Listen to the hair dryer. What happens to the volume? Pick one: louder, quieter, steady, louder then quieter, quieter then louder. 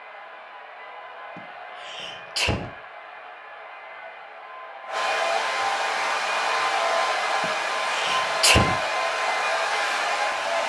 louder.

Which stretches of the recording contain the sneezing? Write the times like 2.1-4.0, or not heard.
1.4-2.7, 7.4-8.8.